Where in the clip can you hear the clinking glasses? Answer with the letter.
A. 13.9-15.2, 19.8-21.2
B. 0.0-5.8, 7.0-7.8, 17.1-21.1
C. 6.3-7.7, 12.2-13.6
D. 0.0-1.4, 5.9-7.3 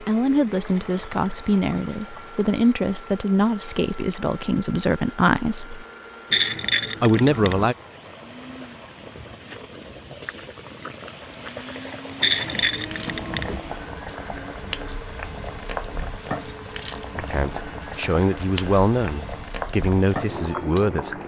C.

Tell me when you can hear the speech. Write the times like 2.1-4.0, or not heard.
0.0-5.8, 7.0-7.8, 17.1-21.1.